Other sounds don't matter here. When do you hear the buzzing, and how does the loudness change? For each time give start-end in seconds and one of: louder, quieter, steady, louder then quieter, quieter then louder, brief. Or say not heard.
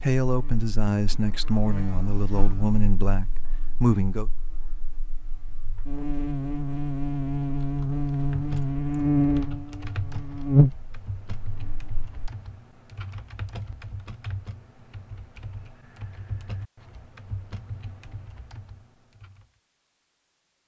0.2-12.3 quieter then louder.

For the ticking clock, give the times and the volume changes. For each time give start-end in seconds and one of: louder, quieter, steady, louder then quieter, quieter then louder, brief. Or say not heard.
not heard.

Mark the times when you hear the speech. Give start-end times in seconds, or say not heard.
0.0-4.3.